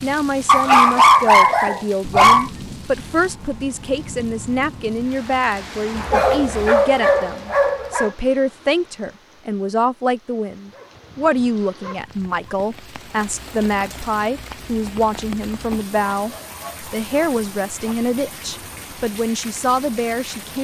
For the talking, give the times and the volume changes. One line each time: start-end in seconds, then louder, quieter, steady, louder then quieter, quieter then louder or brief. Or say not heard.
0.0-20.5 steady.